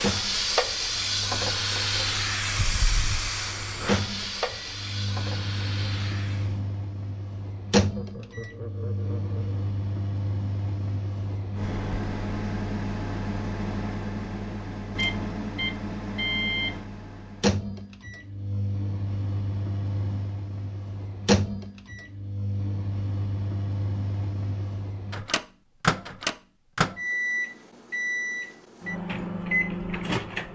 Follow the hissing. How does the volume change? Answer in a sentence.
The volume of the hissing goes down.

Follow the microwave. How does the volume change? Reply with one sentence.
The loudness of the microwave goes up.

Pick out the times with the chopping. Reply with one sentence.
You can't hear the chopping here.